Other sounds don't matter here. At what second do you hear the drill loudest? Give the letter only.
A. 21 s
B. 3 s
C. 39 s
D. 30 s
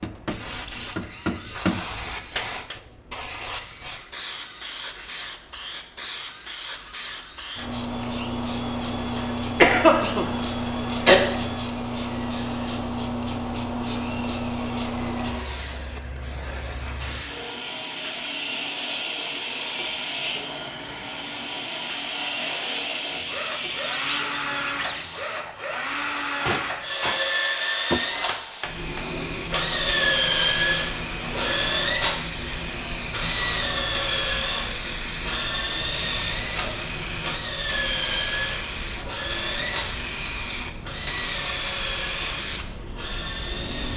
D.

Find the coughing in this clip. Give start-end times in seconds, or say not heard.
9.6-11.2.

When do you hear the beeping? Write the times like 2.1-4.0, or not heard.
not heard.